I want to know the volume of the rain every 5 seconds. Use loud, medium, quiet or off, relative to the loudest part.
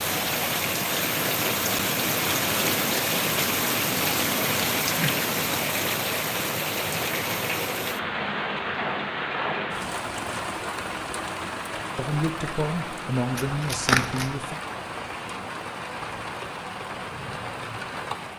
loud, loud, medium, medium.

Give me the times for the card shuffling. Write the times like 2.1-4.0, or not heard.
13.3-14.3.